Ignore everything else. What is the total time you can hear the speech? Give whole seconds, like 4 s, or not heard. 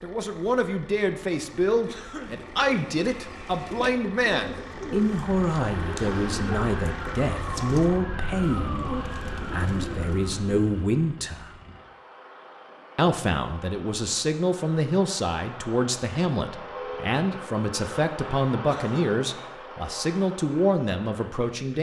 20 s.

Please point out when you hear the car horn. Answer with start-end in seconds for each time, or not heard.
16.6-17.1.